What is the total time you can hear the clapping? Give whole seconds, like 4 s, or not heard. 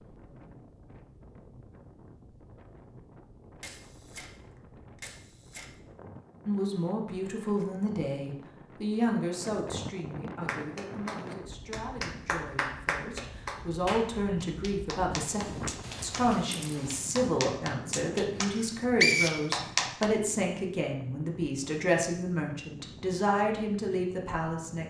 10 s.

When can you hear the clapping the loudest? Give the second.
20 s.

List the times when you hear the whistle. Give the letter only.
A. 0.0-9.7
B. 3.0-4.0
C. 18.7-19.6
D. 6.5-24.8
C.